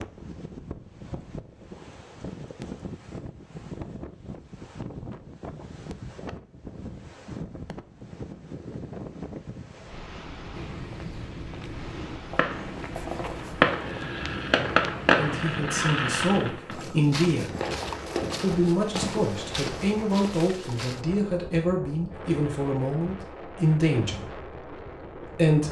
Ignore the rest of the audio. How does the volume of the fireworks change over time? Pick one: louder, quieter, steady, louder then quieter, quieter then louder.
quieter.